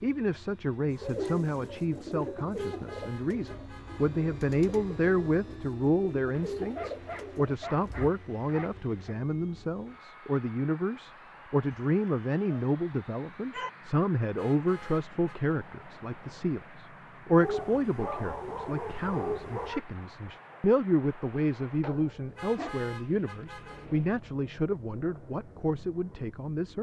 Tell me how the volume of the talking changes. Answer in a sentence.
The volume of the talking stays about the same.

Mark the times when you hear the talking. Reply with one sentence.
The talking can be heard from 0.0 to 26.7 s.